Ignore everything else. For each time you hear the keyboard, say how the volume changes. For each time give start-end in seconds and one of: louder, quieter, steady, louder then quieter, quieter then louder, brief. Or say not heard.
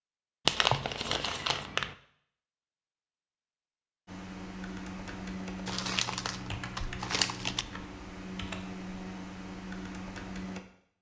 4.0-10.6 steady.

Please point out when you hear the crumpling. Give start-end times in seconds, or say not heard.
0.5-1.9, 5.7-7.7.